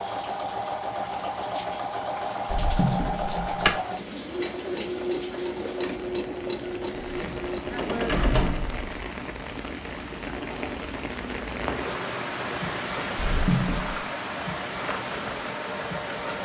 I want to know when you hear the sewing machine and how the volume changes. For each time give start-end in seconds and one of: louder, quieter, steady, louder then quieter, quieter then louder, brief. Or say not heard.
0.0-16.4 quieter.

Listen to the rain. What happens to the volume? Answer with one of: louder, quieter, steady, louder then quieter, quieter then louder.
louder.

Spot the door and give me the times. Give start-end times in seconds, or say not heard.
2.5-3.7, 7.2-8.9, 13.2-14.0.